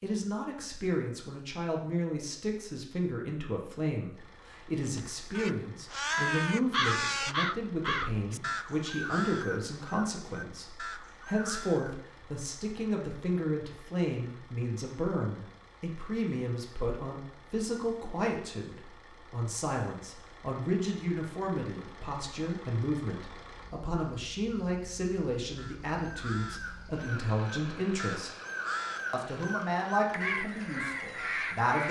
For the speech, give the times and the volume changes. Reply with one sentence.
You can hear the speech from 0.0 to 28.3 s, at a steady volume; and briefly from 29.1 to 31.8 s.